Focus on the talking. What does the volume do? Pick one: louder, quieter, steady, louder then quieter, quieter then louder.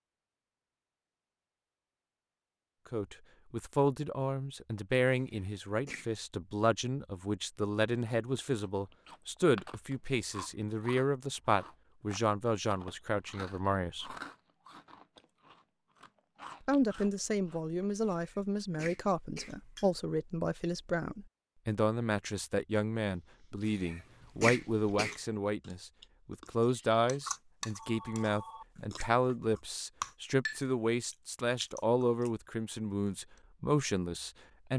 steady.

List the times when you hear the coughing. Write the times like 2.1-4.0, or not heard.
5.1-6.1, 18.0-19.9, 23.6-25.1.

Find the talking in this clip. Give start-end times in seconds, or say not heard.
2.9-14.2, 16.6-34.7.